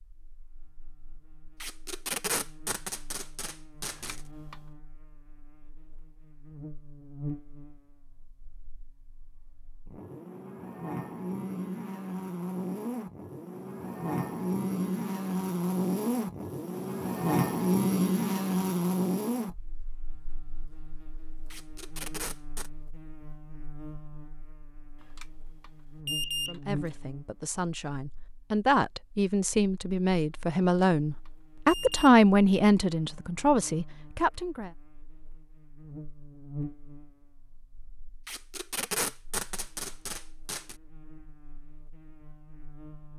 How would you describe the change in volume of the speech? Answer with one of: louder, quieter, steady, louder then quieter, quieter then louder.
louder then quieter.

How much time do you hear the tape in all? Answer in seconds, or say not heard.
6 s.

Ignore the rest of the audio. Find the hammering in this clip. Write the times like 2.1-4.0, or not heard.
not heard.